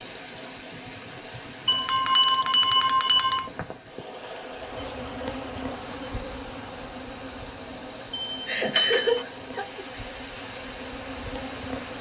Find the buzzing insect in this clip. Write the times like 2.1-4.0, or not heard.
4.5-11.9.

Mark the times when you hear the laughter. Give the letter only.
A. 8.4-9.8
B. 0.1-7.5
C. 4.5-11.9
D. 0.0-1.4
A.